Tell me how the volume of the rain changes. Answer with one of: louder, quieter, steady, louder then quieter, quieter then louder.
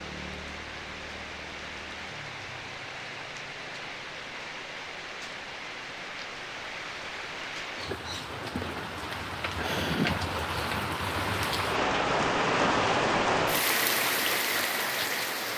louder.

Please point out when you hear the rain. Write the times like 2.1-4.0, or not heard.
0.0-15.5.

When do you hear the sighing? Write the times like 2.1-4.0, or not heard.
9.6-10.2.